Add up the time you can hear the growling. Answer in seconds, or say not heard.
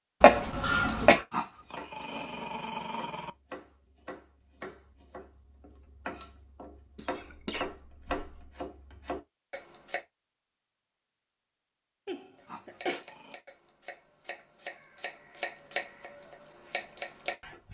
3 s.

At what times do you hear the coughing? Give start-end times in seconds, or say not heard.
0.2-1.2, 7.0-8.5, 12.1-13.1.